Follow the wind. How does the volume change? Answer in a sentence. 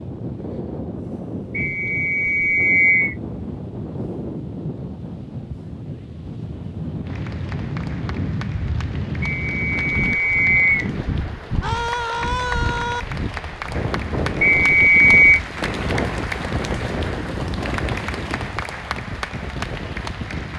The volume of the wind stays about the same.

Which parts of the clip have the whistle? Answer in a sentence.
You can hear the whistle from 1.6 to 3.1 s, from 9.2 to 10.9 s and from 14.4 to 15.4 s.